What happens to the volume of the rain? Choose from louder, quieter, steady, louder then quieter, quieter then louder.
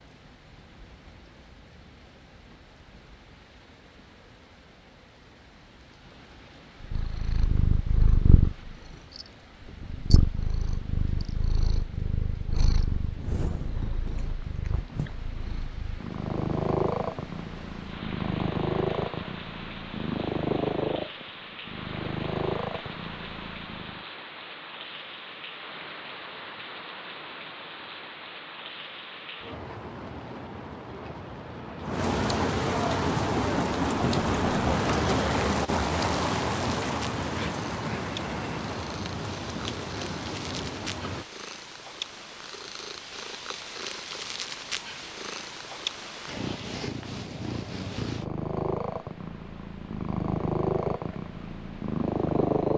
louder.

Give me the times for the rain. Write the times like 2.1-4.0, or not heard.
0.0-41.2.